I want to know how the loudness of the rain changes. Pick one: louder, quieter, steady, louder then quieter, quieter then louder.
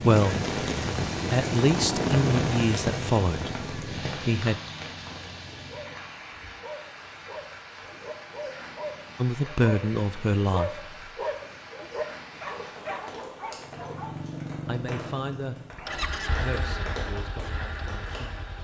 quieter.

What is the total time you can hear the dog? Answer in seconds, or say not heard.
9 s.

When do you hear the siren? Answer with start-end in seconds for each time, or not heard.
not heard.